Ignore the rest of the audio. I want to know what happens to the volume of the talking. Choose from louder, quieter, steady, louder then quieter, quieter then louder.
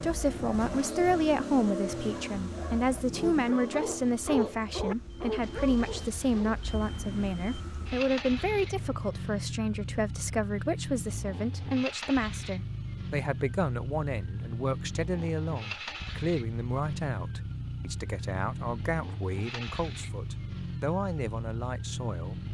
quieter.